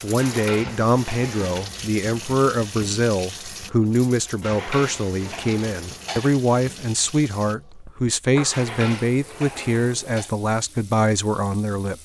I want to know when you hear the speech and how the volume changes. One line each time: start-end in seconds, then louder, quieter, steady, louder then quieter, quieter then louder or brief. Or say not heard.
0.0-12.0 steady.